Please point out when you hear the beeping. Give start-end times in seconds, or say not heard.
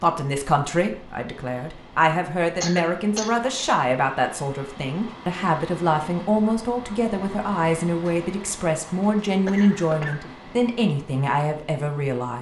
not heard.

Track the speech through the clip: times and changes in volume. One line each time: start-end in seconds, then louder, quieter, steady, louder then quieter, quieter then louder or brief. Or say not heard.
0.0-12.3 steady.